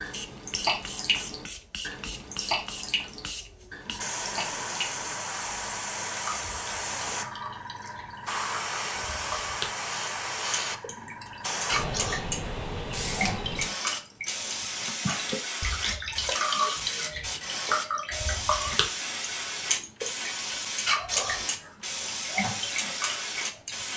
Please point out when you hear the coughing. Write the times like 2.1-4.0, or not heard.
not heard.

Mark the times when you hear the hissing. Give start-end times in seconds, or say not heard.
0.0-23.9.